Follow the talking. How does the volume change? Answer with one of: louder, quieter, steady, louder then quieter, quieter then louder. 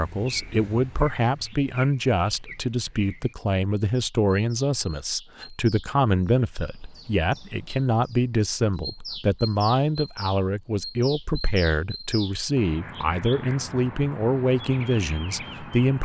steady.